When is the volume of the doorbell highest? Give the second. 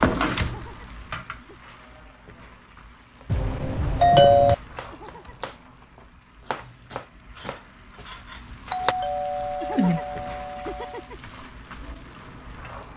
4 s.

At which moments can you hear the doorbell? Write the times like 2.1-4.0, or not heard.
3.3-4.5, 8.7-11.1.